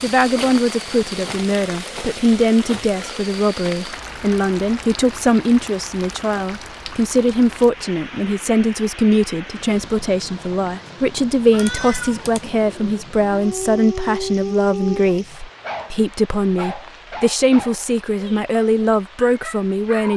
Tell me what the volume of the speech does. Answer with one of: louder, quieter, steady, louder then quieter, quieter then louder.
steady.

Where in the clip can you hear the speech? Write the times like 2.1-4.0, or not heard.
0.0-20.1.